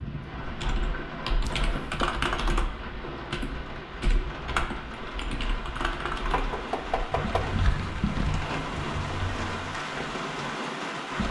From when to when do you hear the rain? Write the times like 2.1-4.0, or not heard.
0.0-11.2.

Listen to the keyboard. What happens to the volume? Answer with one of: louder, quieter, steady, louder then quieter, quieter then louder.
quieter.